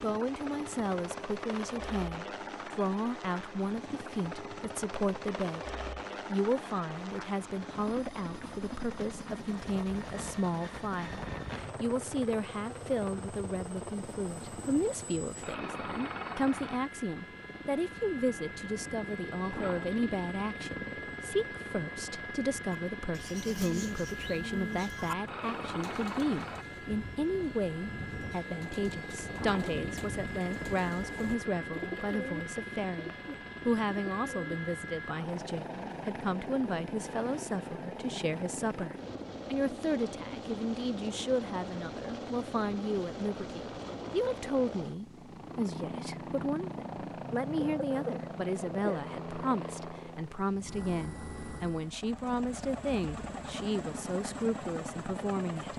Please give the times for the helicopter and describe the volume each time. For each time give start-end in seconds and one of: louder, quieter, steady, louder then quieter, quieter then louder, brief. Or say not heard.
0.0-55.7 steady.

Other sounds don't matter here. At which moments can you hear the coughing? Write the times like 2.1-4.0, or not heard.
47.5-49.0.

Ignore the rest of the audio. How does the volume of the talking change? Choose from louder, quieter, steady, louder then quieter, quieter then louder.
steady.